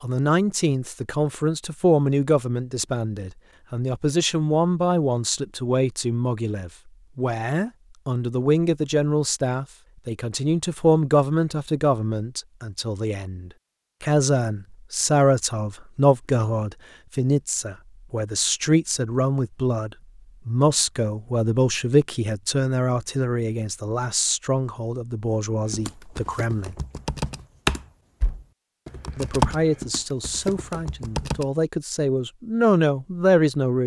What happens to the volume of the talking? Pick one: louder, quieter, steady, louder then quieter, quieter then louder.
steady.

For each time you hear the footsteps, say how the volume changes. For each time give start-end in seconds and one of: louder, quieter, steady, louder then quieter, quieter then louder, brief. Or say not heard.
not heard.